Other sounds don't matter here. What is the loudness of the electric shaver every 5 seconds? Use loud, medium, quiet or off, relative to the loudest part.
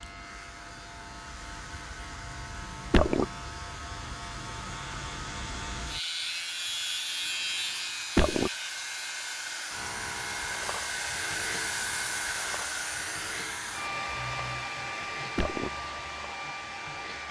medium, loud, medium, medium.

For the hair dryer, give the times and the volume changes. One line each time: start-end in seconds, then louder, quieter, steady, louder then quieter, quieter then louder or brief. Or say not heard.
0.0-17.2 louder.